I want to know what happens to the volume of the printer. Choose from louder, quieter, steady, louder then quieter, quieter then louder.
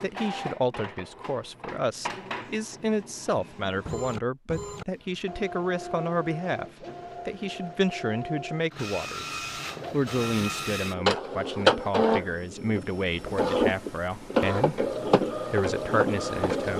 louder.